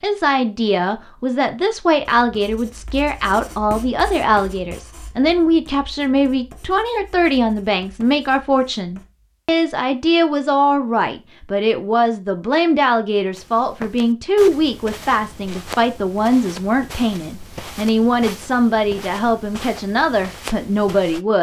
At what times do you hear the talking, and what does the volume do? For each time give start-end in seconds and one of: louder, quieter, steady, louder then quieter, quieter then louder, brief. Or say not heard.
0.0-21.3 steady.